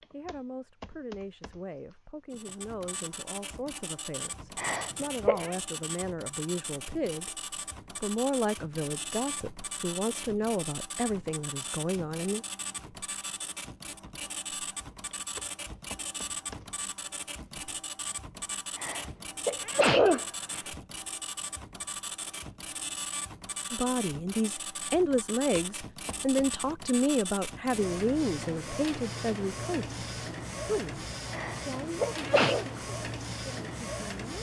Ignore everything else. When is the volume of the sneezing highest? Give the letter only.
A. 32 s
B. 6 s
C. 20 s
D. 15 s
C.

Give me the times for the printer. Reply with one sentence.
You can hear the printer from 2.3 to 34.3 s.